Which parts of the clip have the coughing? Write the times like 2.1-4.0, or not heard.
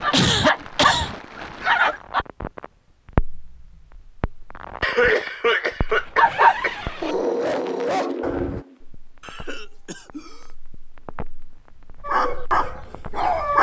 0.1-1.1, 4.8-6.8, 9.2-10.4.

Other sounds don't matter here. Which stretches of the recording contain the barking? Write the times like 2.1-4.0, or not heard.
0.0-2.2, 6.2-8.6, 12.0-13.5.